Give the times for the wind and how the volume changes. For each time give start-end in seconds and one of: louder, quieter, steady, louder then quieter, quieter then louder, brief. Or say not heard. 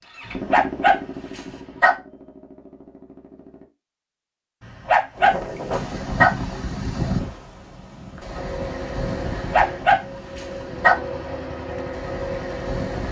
5.2-13.0 quieter.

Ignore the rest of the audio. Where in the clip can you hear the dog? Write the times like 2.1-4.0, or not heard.
0.2-1.9, 4.6-6.3, 9.3-10.9.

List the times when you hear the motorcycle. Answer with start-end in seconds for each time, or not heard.
0.0-3.7, 8.3-13.0.